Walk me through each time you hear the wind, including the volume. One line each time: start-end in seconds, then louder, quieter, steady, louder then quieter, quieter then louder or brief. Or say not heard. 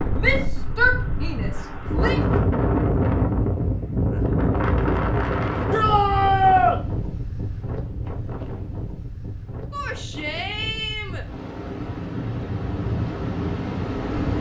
0.0-14.3 quieter then louder.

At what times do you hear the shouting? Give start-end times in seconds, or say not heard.
0.2-2.2, 5.7-6.8, 9.7-11.2.